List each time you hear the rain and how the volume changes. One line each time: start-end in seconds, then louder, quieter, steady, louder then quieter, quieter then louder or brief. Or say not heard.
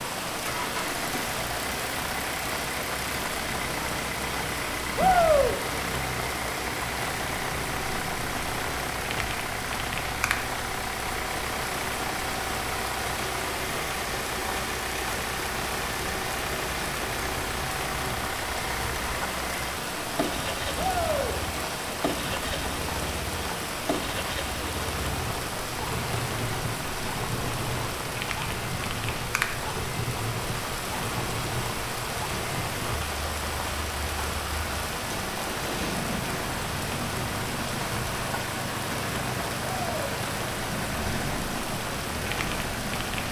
0.0-43.2 steady.